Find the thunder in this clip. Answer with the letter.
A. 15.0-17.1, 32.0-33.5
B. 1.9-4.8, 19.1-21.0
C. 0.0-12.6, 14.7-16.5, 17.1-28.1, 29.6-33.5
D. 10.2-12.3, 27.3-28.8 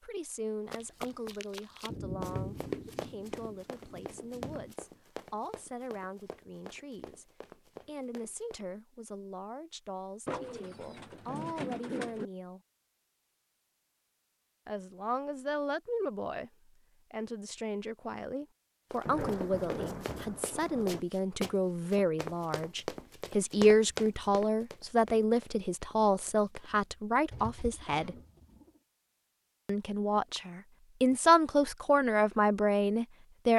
B.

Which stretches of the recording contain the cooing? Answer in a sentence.
You can hear the cooing from 10.2 to 12.3 s and from 27.3 to 28.8 s.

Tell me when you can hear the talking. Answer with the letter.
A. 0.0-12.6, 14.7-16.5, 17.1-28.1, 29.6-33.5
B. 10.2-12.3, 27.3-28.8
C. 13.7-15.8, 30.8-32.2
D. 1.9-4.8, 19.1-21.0
A.